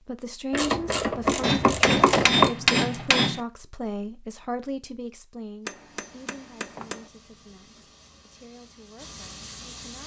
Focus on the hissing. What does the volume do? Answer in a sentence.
The loudness of the hissing goes up.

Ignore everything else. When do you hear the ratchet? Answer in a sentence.
You can hear the ratchet from 0.5 to 2.5 s.